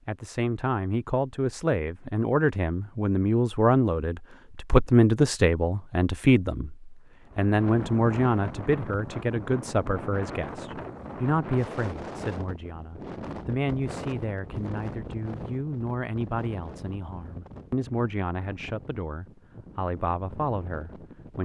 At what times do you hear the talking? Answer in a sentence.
You can hear the talking from 0.1 to 21.4 s.